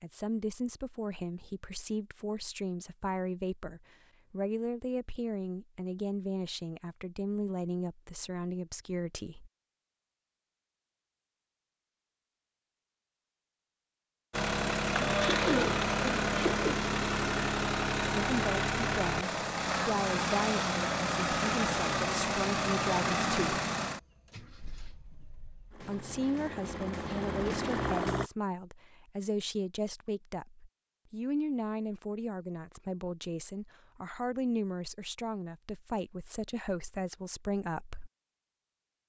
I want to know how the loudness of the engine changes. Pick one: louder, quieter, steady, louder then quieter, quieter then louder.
quieter.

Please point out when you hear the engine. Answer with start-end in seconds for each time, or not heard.
14.3-28.3.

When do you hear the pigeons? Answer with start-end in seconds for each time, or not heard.
14.9-16.8.